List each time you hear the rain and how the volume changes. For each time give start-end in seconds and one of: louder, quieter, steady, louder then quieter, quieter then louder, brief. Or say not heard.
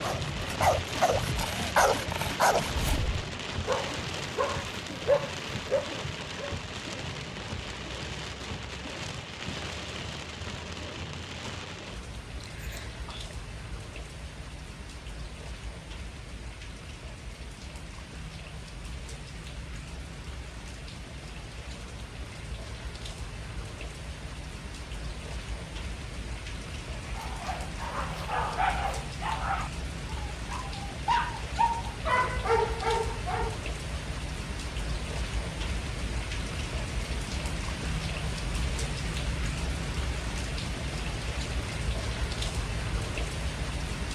0.0-44.0 quieter then louder.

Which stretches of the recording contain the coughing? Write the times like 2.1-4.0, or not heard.
12.4-13.3.